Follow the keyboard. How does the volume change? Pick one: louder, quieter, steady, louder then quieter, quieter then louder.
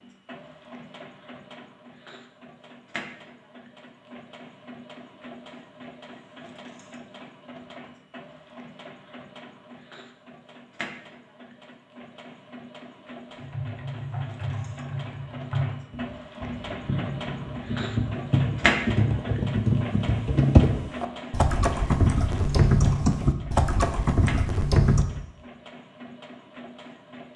louder.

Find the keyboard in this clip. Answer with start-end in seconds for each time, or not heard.
13.3-25.1.